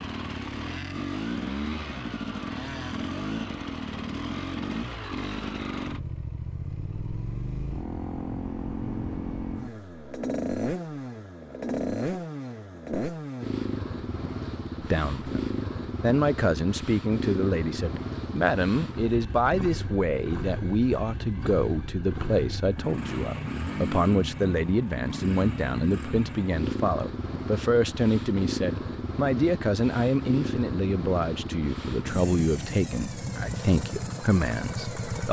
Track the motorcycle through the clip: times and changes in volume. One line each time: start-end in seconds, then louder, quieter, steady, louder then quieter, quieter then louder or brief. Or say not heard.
0.0-35.2 steady.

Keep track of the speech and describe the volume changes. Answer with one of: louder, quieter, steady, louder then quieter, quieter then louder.
steady.